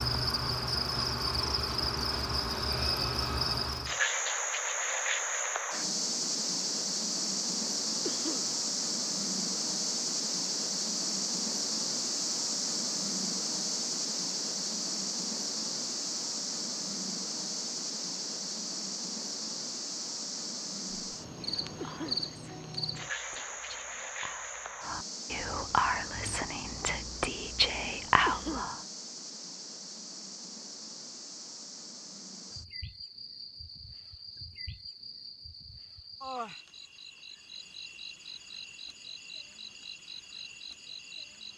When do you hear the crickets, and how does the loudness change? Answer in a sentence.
You can hear the crickets from 0.0 to 41.5 s, getting quieter.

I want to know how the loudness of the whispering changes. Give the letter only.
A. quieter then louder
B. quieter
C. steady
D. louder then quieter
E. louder
E.